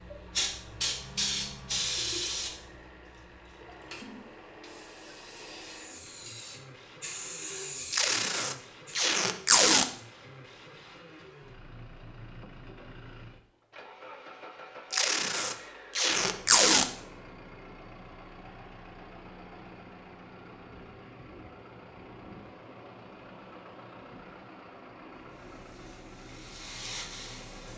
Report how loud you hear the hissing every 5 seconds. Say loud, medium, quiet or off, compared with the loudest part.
loud, medium, off, off, off, medium.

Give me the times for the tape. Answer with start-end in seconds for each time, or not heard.
7.9-9.8, 14.9-16.9.